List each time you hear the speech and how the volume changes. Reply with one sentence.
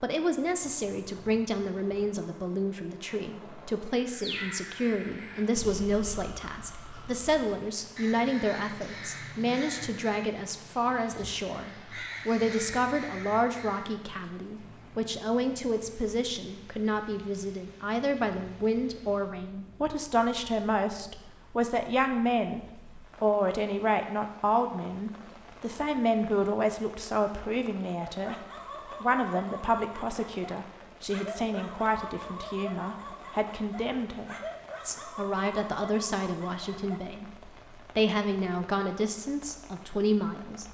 You can hear the speech from 0.0 to 40.6 s, at a steady volume.